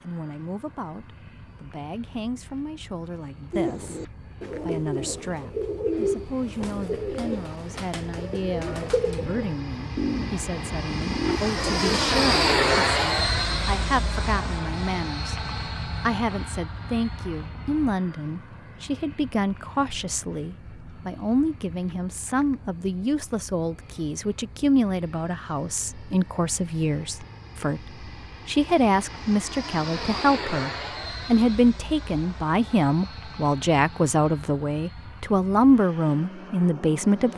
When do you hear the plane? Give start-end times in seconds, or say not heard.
0.0-37.3.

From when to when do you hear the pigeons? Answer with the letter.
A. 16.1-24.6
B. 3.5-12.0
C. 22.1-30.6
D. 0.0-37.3
B.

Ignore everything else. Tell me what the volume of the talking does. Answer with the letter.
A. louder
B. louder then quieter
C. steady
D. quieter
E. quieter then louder
A.